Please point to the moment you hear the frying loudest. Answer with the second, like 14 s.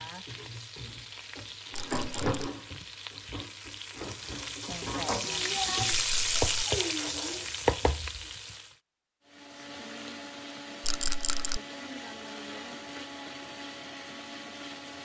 6 s.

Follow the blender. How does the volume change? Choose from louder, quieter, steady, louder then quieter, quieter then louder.
steady.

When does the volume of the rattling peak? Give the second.
11 s.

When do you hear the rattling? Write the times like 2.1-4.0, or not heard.
1.7-2.5, 5.9-6.7, 10.8-11.6.